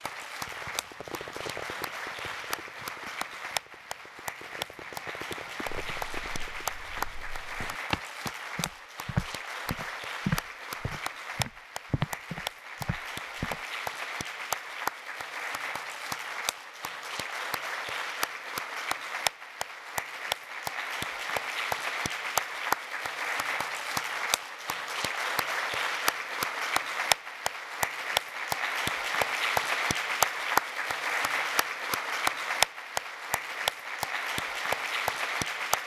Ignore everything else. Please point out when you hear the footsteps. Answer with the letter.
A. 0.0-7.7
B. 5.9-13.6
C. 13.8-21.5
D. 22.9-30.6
B.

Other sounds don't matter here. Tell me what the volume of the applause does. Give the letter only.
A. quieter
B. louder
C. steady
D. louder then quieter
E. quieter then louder
B.